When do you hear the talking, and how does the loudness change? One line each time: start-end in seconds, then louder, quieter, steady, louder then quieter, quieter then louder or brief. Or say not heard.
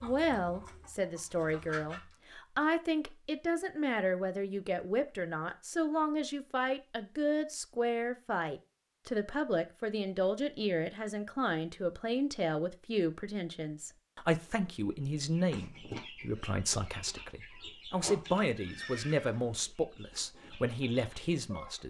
0.0-21.8 steady.